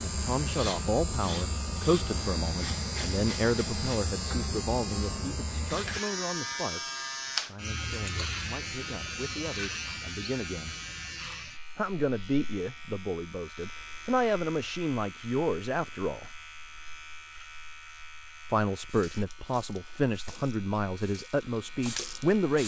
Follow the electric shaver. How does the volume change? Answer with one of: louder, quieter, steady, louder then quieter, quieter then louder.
quieter.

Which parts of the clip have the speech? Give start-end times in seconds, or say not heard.
0.0-10.8, 11.8-16.3, 18.5-22.6.